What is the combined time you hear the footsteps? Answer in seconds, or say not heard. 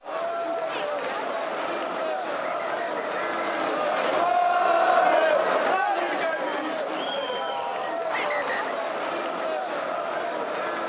not heard.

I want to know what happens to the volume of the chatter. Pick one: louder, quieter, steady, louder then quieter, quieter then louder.
louder then quieter.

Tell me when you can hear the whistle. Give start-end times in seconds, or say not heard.
2.4-3.5, 8.1-8.8.